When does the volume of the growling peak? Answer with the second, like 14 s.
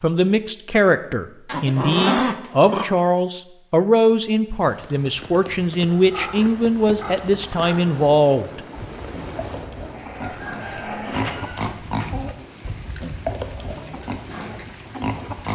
2 s.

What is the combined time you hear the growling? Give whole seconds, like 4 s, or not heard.
3 s.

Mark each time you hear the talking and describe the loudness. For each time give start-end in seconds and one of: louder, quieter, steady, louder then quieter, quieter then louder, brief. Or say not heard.
0.0-8.6 steady.